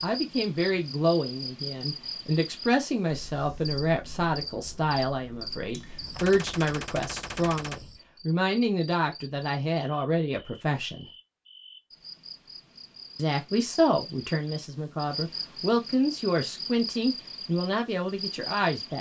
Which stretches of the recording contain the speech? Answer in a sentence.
You can hear the speech from 0.0 to 11.1 s and from 13.2 to 18.9 s.